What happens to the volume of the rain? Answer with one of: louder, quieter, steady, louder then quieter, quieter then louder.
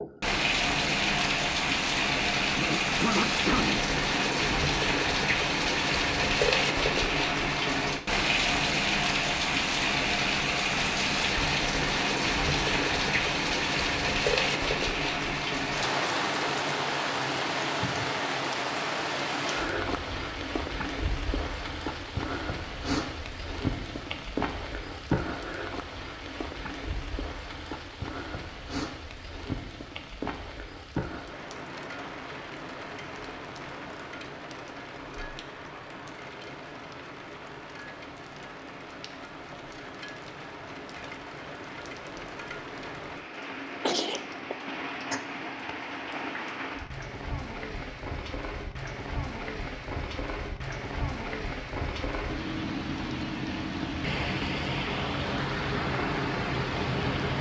quieter then louder.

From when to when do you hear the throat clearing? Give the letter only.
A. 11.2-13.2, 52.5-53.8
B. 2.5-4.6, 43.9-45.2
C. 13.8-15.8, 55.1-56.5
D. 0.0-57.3
B.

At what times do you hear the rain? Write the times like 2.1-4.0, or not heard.
0.0-57.3.